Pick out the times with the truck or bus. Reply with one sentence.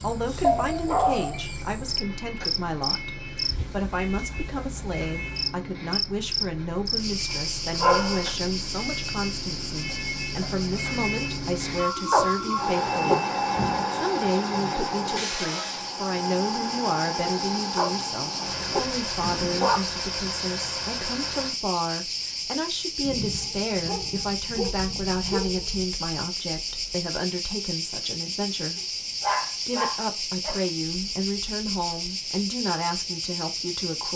The truck or bus can be heard from 0.0 to 21.6 s.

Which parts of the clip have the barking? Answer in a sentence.
You can hear the barking from 0.4 to 1.4 s, from 7.8 to 8.3 s, from 12.1 to 13.8 s, from 17.8 to 19.8 s, from 23.0 to 25.9 s and from 28.8 to 30.6 s.